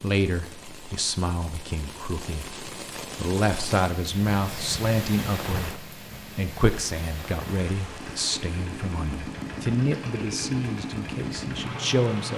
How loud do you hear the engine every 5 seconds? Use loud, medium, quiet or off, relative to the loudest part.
off, loud, loud.